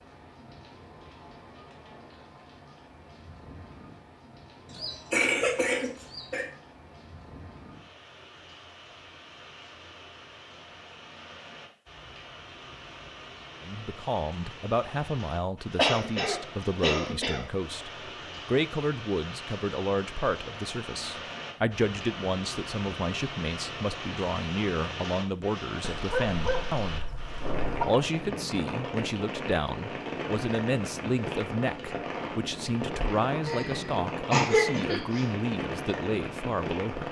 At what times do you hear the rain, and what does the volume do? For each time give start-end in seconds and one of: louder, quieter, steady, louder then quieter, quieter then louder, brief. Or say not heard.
0.0-37.0 louder.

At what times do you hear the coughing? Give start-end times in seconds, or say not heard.
4.7-6.5, 15.8-17.4, 33.5-35.2.